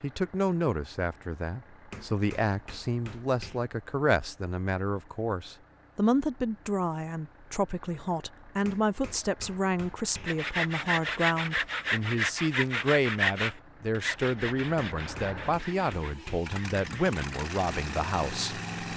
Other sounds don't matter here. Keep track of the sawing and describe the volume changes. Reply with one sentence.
The volume of the sawing goes down.